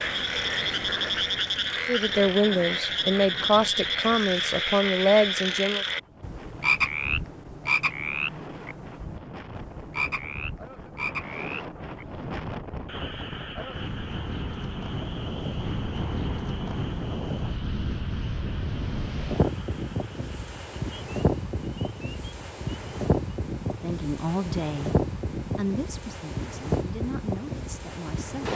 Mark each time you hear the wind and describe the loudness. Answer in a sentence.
You can hear the wind from 0.0 to 28.5 s, getting louder.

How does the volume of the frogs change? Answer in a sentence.
The volume of the frogs goes down.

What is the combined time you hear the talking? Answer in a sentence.
The talking can be heard for 9 seconds in total.